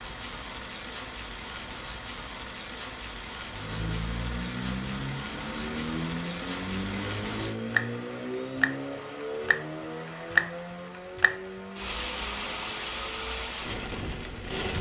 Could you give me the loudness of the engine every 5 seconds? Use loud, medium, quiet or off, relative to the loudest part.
loud, loud, medium.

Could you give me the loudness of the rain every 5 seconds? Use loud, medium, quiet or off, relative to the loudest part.
medium, loud, loud.